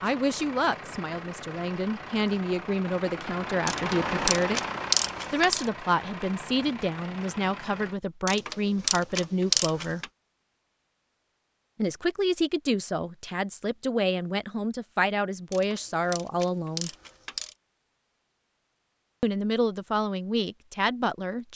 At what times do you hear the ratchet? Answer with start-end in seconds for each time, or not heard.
3.6-5.7, 8.2-10.1, 15.5-17.6.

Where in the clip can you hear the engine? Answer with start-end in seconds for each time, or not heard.
0.0-8.0.